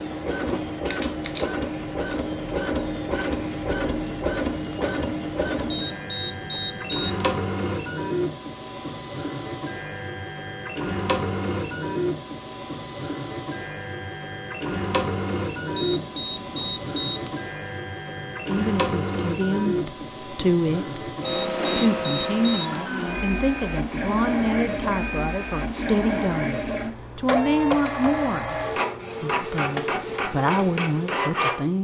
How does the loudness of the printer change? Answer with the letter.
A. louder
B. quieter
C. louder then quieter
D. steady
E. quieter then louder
D.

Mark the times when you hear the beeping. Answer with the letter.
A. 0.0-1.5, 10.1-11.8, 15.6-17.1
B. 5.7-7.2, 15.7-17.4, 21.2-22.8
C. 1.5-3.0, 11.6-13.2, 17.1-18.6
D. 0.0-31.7
B.